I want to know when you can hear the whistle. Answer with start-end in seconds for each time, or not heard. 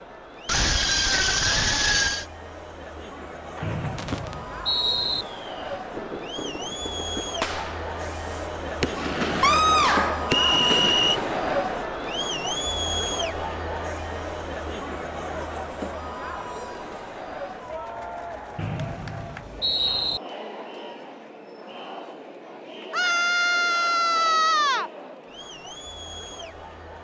3.6-5.2, 10.3-11.2, 18.6-20.2.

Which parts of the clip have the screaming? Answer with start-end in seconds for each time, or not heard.
0.5-2.2, 9.4-10.3, 22.9-24.9.